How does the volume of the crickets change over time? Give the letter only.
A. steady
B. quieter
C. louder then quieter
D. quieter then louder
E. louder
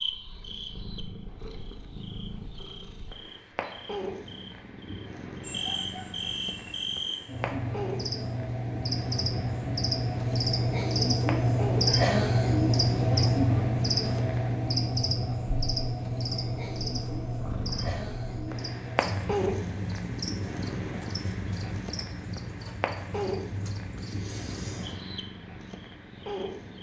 C.